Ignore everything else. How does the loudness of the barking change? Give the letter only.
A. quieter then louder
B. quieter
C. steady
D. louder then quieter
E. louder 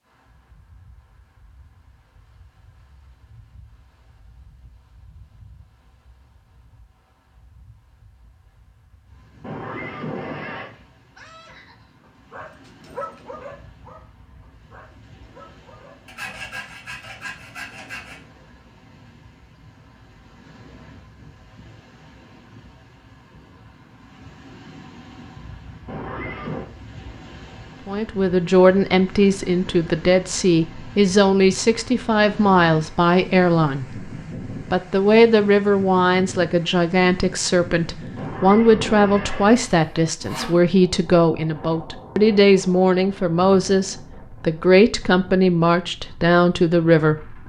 D.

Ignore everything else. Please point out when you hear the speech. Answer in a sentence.
You can hear the speech from 27.9 to 34.0 s and from 34.7 to 47.4 s.